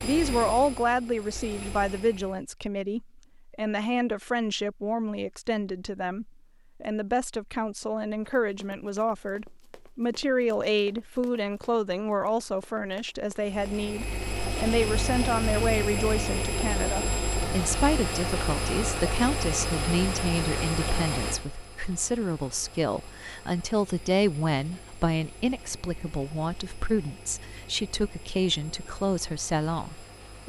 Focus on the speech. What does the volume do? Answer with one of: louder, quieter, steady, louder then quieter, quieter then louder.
steady.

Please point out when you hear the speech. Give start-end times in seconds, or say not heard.
0.0-30.4.